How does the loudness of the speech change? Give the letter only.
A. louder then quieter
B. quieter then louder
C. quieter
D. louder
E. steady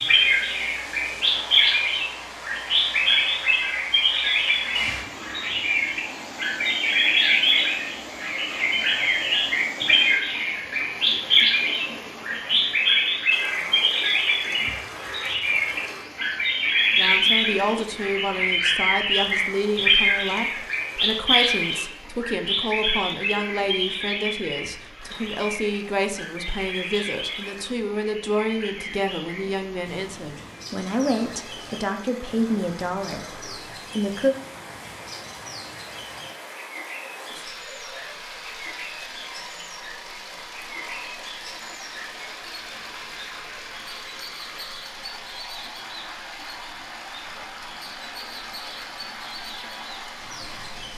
E.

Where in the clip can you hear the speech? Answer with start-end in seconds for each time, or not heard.
16.9-34.4.